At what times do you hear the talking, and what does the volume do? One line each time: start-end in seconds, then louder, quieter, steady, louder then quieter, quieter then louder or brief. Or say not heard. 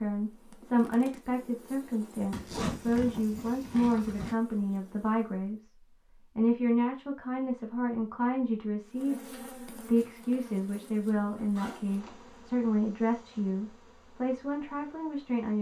0.0-15.5 steady.